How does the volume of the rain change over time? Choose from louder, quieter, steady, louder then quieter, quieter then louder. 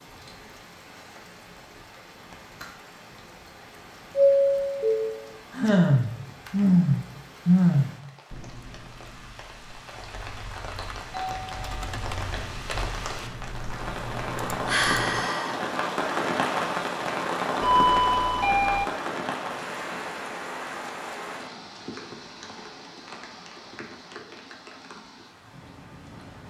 louder then quieter.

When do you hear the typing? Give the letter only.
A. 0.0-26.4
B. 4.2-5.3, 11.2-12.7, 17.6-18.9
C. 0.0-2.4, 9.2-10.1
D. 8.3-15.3
D.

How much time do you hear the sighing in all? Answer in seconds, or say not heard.
3 s.